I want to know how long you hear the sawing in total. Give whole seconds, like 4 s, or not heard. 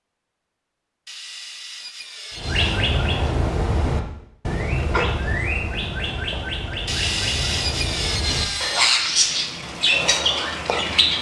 4 s.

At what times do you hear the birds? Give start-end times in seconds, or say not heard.
2.3-11.1.